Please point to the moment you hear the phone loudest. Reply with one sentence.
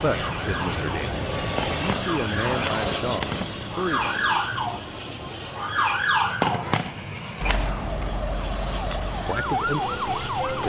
The volume of the phone peaks at 7 seconds.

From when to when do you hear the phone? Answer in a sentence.
The phone can be heard from 1.6 to 3.5 s and from 6.4 to 7.7 s.